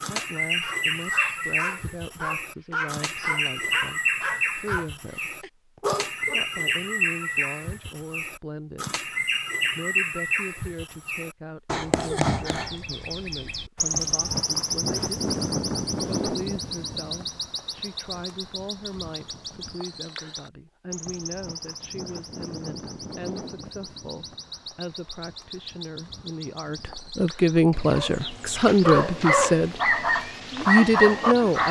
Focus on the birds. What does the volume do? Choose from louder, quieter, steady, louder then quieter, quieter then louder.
quieter.